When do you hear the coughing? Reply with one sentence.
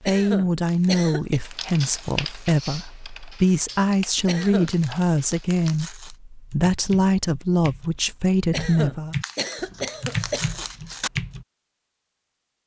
The coughing can be heard from 0.1 to 1.4 s, from 4.2 to 4.7 s and from 8.5 to 10.7 s.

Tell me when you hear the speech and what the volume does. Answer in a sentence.
The speech can be heard from 0.0 to 9.2 s, at a steady volume.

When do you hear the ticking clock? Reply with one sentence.
The ticking clock can't be heard in this clip.